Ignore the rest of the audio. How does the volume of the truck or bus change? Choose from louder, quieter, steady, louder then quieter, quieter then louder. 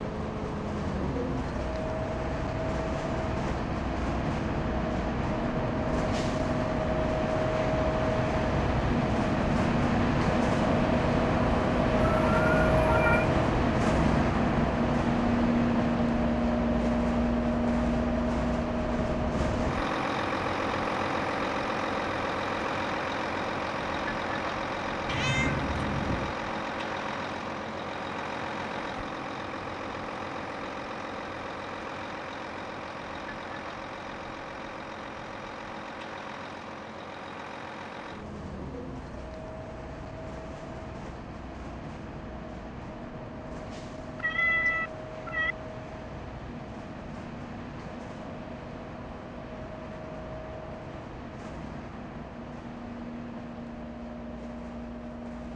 quieter.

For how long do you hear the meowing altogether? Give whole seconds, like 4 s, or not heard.
4 s.